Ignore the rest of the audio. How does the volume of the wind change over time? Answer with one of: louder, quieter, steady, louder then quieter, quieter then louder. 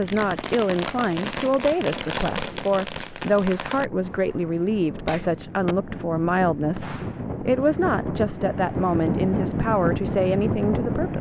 louder.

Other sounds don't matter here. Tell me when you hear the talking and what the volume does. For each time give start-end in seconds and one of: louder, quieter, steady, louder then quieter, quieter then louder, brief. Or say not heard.
0.0-11.1 steady.